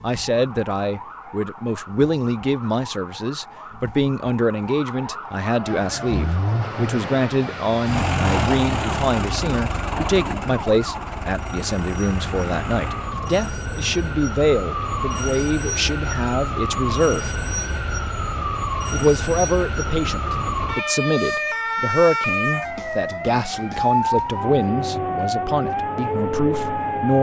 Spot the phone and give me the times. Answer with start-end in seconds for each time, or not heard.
not heard.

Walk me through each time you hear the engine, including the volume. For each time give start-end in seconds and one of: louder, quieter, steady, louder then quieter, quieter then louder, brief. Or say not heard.
5.7-20.8 quieter.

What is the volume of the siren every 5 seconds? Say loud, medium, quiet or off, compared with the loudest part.
quiet, medium, medium, loud, loud, loud.